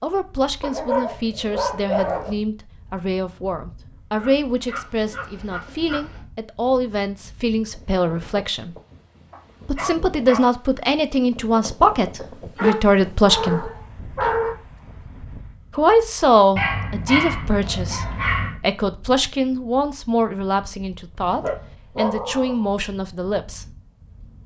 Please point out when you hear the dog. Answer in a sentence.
The dog can be heard from 0.6 to 2.3 s, from 4.2 to 6.2 s, from 9.3 to 10.5 s, from 12.6 to 14.6 s, from 16.6 to 18.6 s and from 21.2 to 22.7 s.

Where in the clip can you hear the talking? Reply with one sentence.
The talking can be heard from 0.0 to 8.8 s, from 9.7 to 13.7 s and from 15.8 to 23.7 s.